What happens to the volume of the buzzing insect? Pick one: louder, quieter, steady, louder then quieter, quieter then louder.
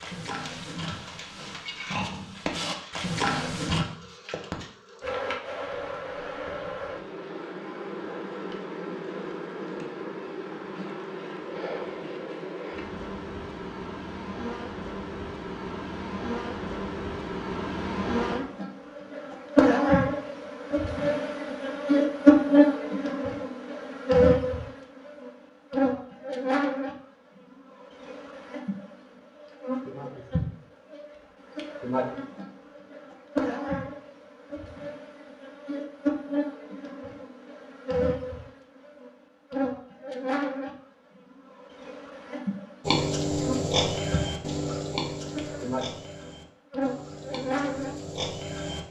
louder then quieter.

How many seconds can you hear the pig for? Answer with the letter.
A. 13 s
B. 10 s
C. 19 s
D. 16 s
B.